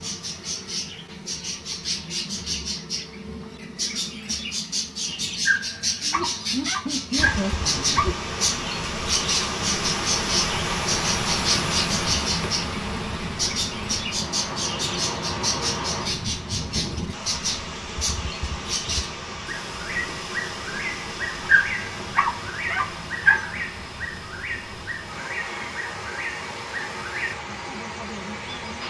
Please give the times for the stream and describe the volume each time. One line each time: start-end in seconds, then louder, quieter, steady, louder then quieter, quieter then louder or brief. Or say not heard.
7.2-28.8 quieter.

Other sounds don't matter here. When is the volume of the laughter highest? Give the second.
7 s.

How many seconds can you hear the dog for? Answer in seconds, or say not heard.
5 s.